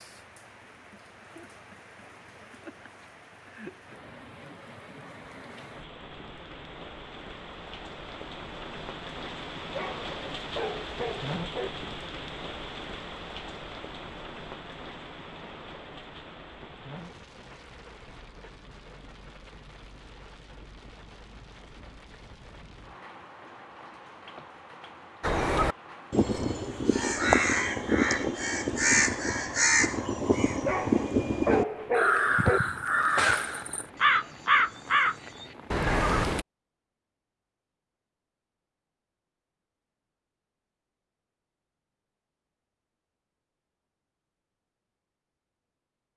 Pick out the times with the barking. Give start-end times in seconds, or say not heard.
9.7-11.7, 30.6-32.6.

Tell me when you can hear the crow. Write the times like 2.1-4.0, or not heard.
25.2-36.5.